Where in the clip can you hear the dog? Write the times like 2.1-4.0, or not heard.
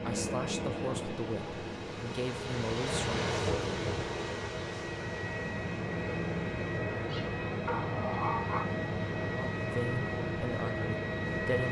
7.0-8.7.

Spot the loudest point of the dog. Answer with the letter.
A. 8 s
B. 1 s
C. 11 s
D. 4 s
A.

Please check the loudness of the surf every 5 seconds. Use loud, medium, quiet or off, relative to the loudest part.
loud, medium, medium.